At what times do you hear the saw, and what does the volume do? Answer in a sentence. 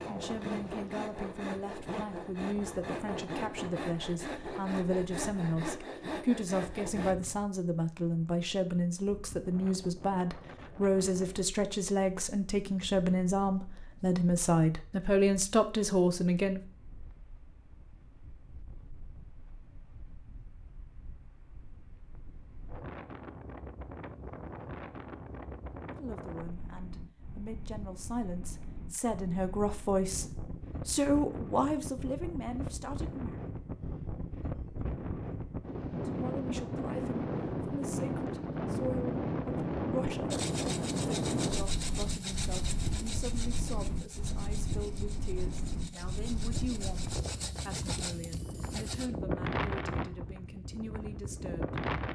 You can hear the saw from 0.0 to 7.2 s, at a steady volume; and from 40.3 to 49.1 s, getting quieter then louder.